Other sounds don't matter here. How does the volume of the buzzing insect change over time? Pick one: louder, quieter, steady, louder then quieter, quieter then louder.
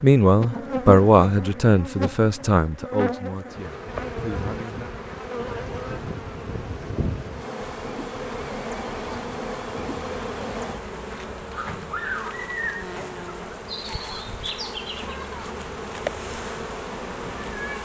steady.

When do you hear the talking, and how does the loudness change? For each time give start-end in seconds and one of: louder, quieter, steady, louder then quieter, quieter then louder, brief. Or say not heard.
0.0-4.9 quieter.